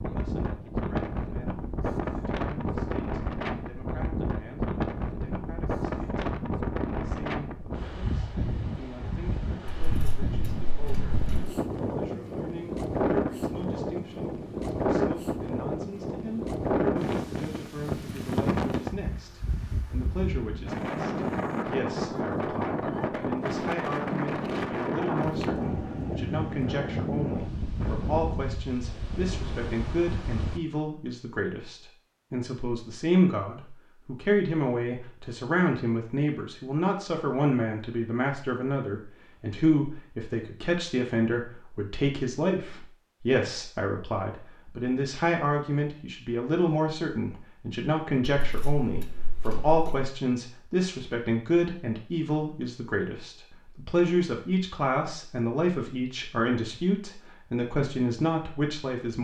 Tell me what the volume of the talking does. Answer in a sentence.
The volume of the talking goes up.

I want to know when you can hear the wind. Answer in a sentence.
The wind can be heard from 0.0 to 30.6 s.